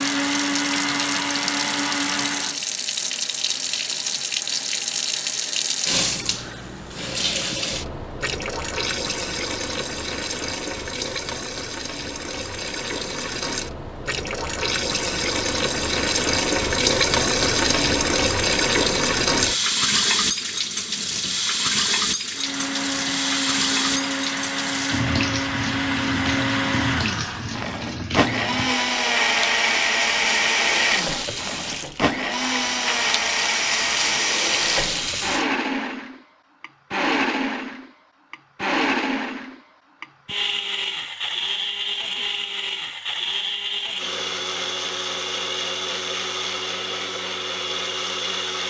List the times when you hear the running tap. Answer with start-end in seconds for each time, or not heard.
0.0-35.5.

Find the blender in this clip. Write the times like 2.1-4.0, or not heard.
0.0-2.6, 22.3-48.6.